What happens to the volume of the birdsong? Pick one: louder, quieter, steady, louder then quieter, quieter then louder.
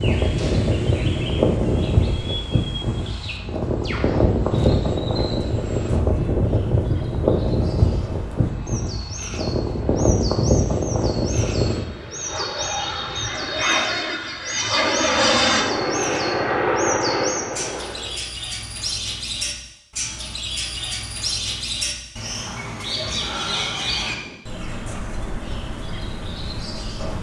louder.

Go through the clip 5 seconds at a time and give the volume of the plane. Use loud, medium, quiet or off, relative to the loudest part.
loud, loud, loud, loud, off, off.